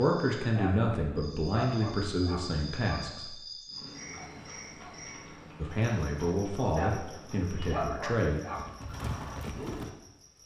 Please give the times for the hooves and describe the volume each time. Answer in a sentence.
The hooves can be heard from 3.6 to 9.9 s, getting louder.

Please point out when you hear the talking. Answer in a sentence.
You can hear the talking from 0.0 to 3.4 s and from 5.5 to 8.4 s.